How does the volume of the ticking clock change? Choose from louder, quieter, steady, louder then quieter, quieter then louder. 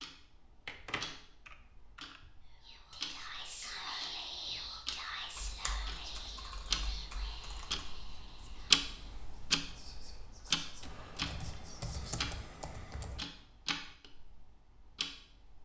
louder then quieter.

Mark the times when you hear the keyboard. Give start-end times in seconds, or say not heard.
0.7-2.2, 5.3-8.0, 10.8-13.3.